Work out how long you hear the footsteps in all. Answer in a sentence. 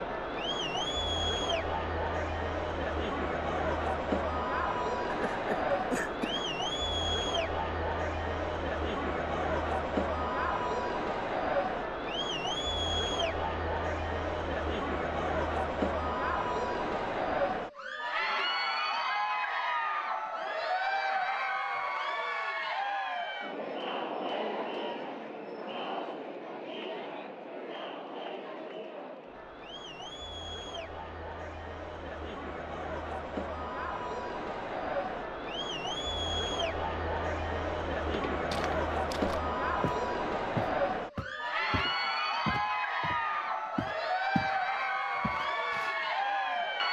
The footsteps can be heard for 7 seconds in total.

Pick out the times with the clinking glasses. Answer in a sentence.
The clinking glasses can't be heard in this clip.